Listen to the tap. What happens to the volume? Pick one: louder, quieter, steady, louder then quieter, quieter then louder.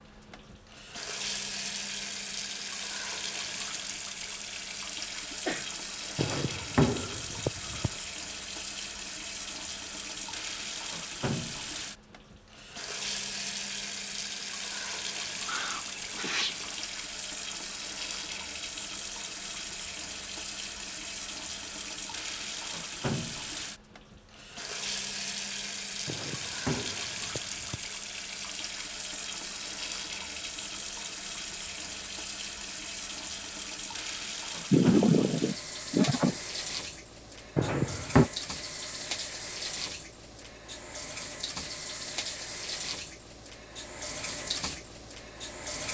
steady.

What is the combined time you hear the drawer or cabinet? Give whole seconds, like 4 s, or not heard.
4 s.